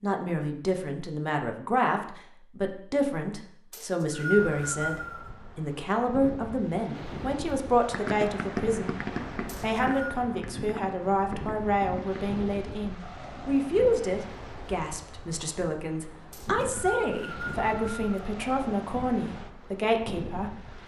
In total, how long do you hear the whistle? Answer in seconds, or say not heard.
4 s.